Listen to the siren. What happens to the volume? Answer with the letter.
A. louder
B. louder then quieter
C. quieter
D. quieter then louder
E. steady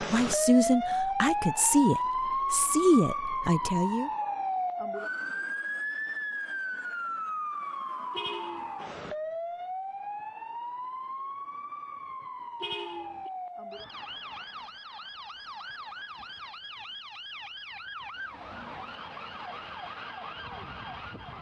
C.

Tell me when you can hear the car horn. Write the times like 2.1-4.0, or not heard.
8.1-8.8, 12.6-13.3.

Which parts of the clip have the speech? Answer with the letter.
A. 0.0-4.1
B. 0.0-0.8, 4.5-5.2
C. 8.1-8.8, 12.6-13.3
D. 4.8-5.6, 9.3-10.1
A.